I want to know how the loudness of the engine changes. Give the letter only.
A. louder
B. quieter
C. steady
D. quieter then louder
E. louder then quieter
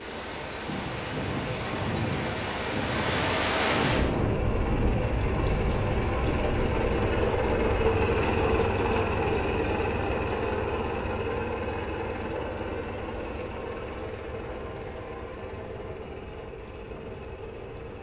E.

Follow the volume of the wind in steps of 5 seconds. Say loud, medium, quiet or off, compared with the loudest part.
loud, medium, quiet, quiet.